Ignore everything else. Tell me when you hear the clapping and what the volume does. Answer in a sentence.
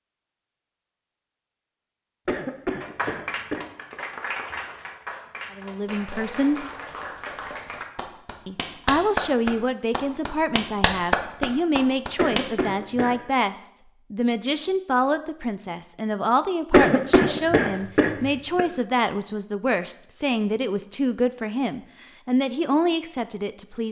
The clapping can be heard from 2.8 to 12.4 s, getting louder.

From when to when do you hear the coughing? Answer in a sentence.
The coughing can be heard from 2.2 to 3.6 s, from 12.2 to 13.2 s and from 16.7 to 18.6 s.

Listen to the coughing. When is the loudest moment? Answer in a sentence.
The volume of the coughing peaks at 17 seconds.